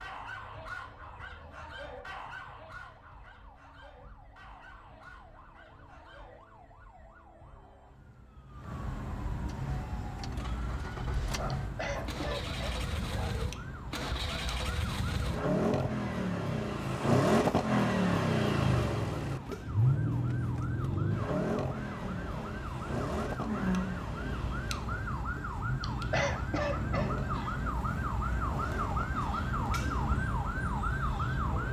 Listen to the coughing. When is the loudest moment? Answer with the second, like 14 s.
26 s.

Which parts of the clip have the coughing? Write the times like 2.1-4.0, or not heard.
11.5-12.8, 25.8-27.5.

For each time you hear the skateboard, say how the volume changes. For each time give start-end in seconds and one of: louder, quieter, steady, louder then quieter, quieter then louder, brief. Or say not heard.
not heard.